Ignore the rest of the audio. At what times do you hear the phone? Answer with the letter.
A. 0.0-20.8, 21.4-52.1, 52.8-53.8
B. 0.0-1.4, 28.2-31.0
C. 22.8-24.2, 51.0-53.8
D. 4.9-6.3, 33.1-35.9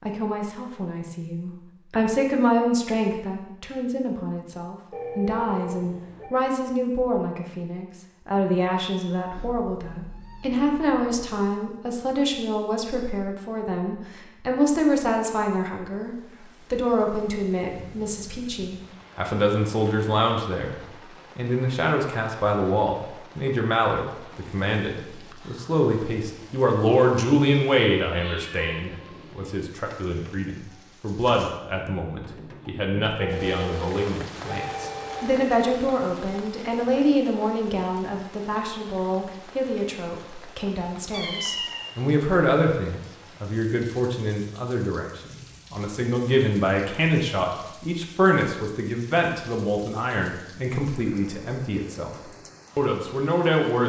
D.